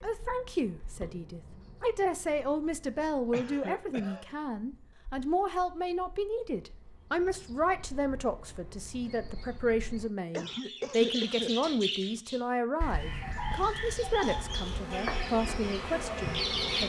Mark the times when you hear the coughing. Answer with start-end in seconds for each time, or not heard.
3.3-4.3, 10.3-11.5.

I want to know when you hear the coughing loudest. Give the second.
11 s.